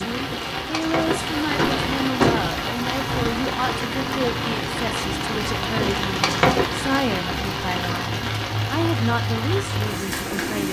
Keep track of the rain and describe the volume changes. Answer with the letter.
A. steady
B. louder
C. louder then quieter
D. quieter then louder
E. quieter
A.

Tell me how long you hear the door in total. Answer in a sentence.
The door can be heard for 3 seconds in total.